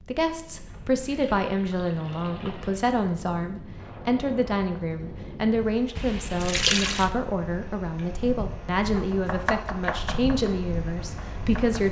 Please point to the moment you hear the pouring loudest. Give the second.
7 s.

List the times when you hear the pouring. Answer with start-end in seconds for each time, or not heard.
0.6-3.0, 6.0-7.1.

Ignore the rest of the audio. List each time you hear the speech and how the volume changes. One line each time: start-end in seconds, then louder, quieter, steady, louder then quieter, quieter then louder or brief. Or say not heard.
0.1-11.8 steady.